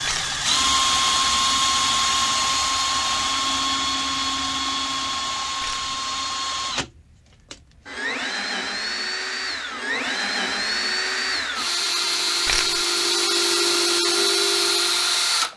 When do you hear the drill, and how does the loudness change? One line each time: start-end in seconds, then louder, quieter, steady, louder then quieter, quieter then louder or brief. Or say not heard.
0.0-15.5 quieter then louder.